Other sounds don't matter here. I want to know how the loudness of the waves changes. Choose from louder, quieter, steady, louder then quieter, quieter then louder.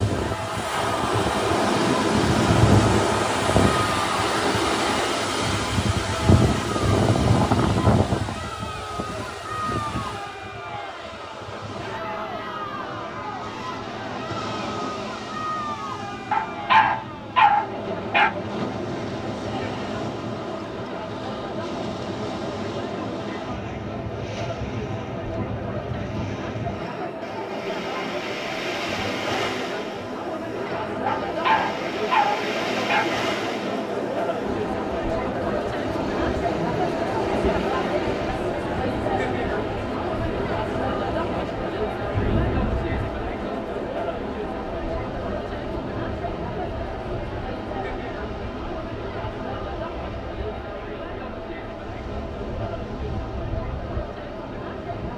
quieter.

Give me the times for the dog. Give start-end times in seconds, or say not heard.
16.3-18.3, 31.1-33.0.